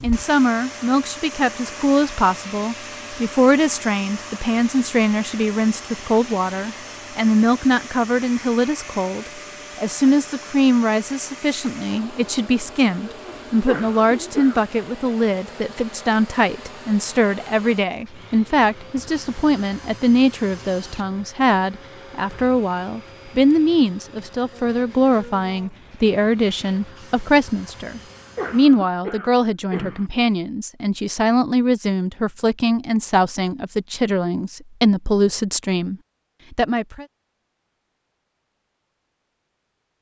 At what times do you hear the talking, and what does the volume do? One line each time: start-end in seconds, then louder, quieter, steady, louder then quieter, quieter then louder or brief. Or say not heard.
0.0-37.0 steady.